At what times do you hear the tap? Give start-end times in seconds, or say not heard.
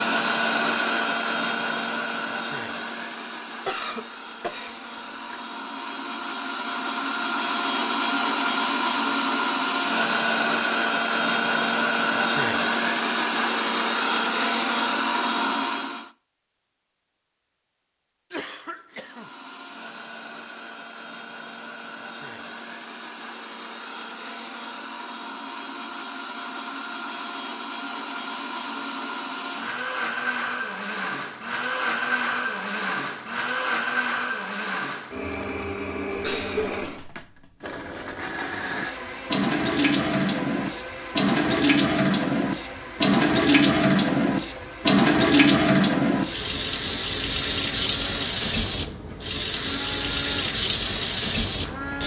38.6-52.0.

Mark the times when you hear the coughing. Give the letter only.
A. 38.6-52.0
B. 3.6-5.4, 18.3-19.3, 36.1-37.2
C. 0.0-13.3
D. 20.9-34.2
B.